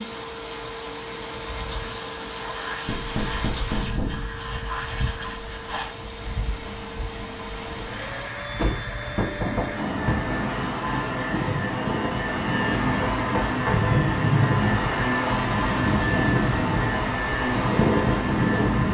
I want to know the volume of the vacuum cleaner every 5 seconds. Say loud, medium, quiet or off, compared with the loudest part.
medium, medium, loud, loud.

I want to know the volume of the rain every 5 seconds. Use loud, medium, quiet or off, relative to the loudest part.
medium, medium, loud, loud.